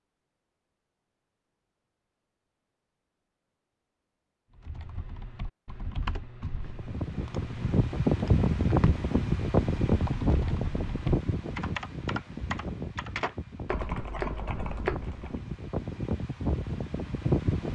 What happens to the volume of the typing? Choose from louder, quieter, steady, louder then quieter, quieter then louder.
louder.